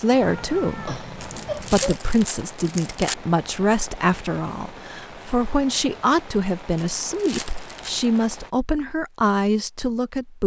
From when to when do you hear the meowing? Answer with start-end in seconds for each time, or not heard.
0.2-2.0.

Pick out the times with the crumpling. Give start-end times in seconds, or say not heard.
1.2-3.1, 6.8-8.1.